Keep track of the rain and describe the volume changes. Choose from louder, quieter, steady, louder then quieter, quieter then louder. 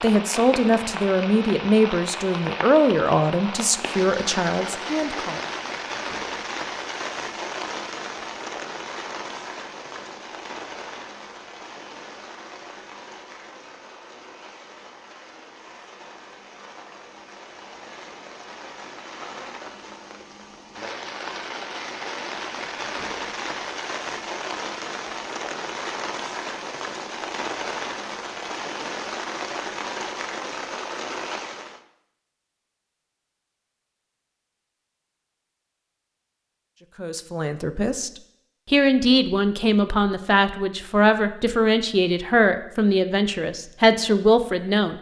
quieter then louder.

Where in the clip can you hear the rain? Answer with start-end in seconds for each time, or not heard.
0.0-31.8.